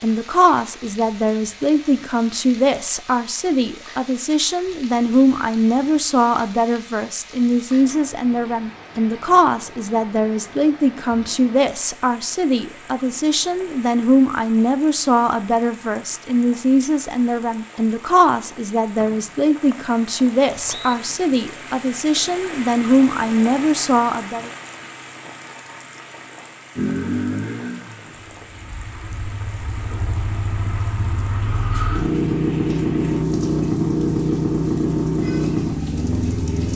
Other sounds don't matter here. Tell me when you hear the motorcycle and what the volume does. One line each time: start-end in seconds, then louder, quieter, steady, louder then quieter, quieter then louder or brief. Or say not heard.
26.8-36.7 louder.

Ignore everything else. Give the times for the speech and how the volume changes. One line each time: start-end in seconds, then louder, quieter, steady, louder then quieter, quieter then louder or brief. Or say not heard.
0.0-24.5 steady.